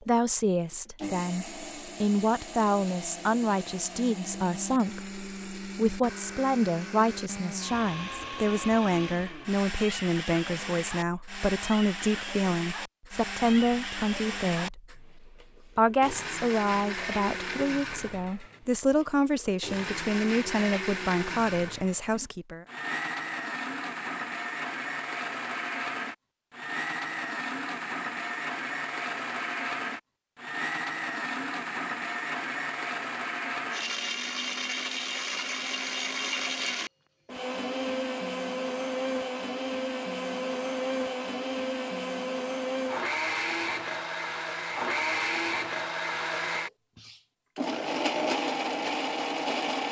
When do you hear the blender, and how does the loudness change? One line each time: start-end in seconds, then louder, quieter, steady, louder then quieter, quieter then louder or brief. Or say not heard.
0.0-49.8 louder.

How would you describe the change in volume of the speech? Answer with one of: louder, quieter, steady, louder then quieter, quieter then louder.
steady.